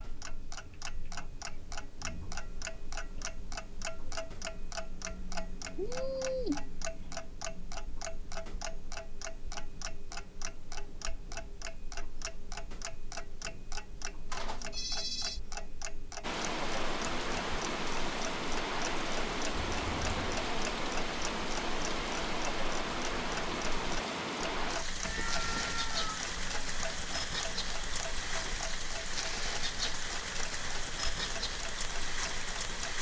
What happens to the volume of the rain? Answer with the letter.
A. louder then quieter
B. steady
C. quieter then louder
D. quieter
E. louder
B.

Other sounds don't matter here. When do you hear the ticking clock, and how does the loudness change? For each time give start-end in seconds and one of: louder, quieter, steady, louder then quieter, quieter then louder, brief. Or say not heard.
0.0-32.9 steady.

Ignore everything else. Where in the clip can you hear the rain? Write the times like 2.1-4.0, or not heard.
16.2-32.9.